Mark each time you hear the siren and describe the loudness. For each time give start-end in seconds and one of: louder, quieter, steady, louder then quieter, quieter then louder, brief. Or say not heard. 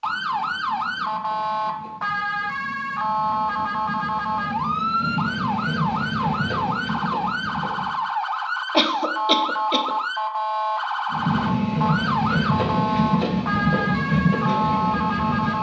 0.0-15.5 steady.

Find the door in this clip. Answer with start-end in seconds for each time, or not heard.
not heard.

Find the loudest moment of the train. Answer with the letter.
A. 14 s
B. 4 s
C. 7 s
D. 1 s
A.